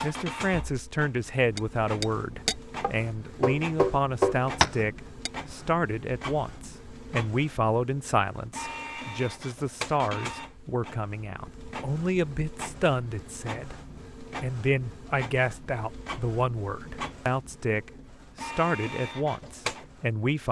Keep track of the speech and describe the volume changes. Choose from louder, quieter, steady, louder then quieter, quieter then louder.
steady.